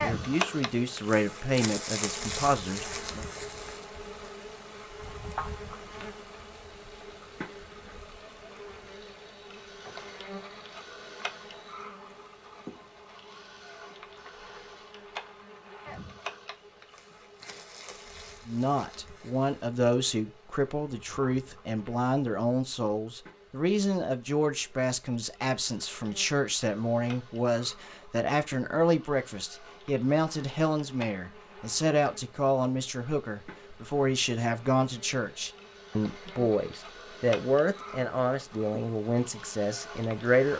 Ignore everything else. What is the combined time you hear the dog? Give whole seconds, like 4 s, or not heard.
not heard.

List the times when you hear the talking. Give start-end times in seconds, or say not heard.
0.0-3.2, 18.4-40.5.